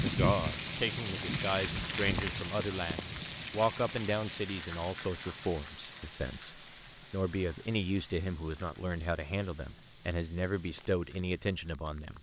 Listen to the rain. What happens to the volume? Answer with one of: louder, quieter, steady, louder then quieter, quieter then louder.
quieter.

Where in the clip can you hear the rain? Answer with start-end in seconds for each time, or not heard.
0.0-12.1.